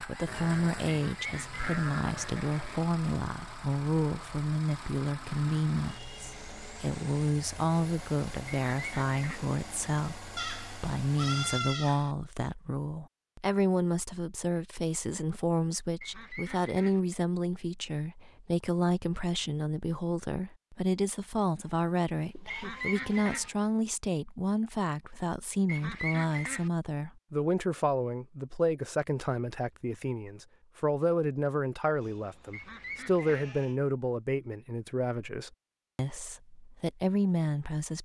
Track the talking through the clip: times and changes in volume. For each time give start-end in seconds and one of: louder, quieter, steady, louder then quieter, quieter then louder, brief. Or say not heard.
0.0-37.9 steady.